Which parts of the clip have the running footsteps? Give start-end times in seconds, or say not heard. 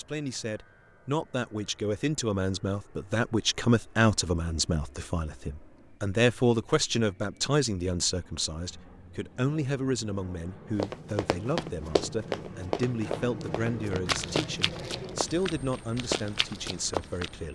10.8-17.3.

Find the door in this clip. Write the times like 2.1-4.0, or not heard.
not heard.